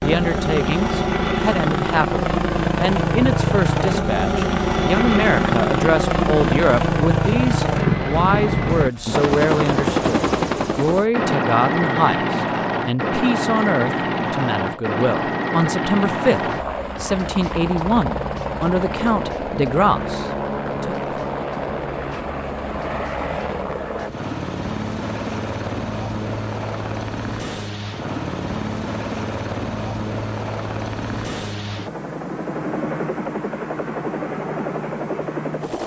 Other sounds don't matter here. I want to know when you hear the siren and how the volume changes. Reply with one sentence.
You can't hear the siren here.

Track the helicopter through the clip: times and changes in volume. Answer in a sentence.
You can hear the helicopter from 0.0 to 35.8 s, getting quieter.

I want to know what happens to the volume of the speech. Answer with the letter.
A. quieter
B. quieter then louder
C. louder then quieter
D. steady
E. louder
D.